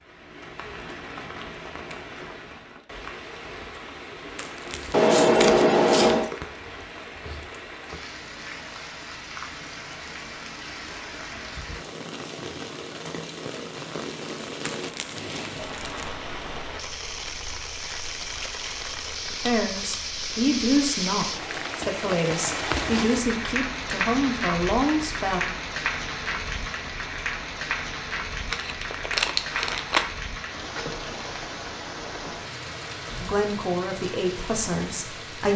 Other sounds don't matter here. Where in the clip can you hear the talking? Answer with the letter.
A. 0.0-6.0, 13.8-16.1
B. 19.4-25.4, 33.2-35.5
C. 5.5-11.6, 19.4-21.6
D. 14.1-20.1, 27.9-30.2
B.